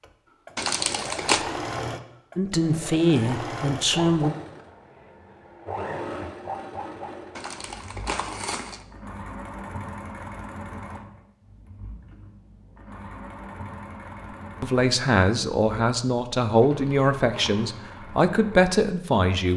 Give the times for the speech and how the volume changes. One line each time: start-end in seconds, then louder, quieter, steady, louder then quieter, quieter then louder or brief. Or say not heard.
2.4-4.3 brief
14.6-19.5 steady.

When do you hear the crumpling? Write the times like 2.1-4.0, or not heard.
0.6-1.4, 7.3-8.8, 16.6-17.6.